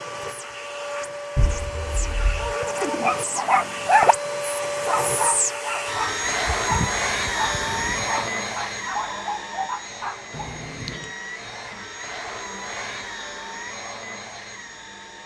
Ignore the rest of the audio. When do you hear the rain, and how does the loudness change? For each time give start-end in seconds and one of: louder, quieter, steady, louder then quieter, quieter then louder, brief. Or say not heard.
not heard.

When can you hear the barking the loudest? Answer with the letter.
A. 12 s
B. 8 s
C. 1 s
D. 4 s
D.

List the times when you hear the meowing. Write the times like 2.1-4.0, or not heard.
1.4-2.5, 6.5-8.1, 10.3-11.1.